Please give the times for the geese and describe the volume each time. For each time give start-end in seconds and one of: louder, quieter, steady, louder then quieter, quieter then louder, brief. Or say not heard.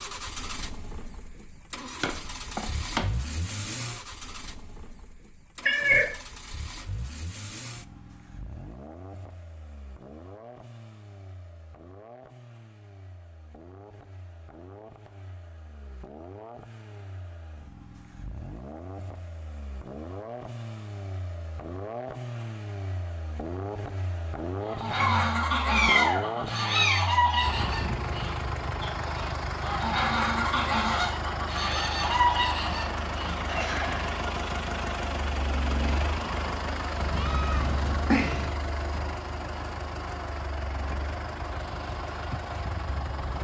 24.6-34.1 steady.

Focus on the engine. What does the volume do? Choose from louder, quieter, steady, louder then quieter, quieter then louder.
quieter then louder.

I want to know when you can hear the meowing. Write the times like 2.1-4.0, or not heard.
5.7-6.1, 25.0-27.0, 37.0-38.5.